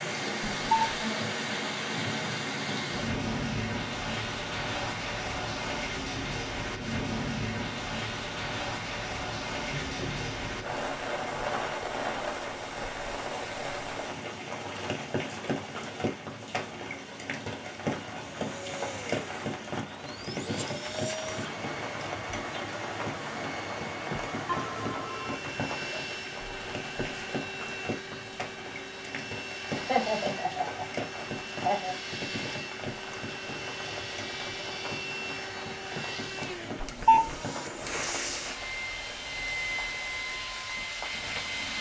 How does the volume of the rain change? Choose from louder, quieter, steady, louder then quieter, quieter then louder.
quieter.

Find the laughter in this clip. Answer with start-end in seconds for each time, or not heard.
9.7-10.2, 29.8-31.9.